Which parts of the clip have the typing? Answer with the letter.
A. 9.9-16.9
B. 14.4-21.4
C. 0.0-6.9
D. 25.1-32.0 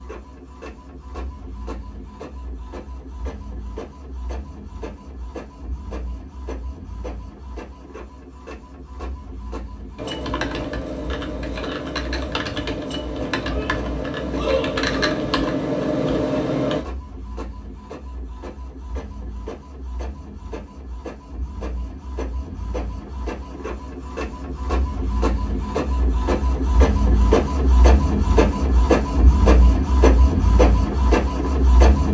A.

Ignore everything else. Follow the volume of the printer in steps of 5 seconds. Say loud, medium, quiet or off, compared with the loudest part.
quiet, quiet, quiet, quiet, quiet, loud, loud.